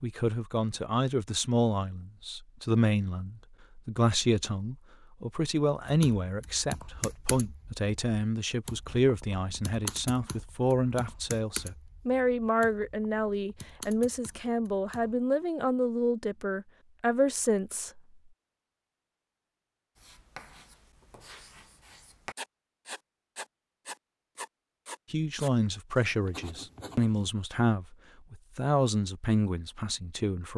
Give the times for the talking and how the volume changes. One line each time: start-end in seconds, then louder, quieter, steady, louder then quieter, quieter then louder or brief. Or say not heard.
0.0-18.0 steady
25.1-30.5 steady.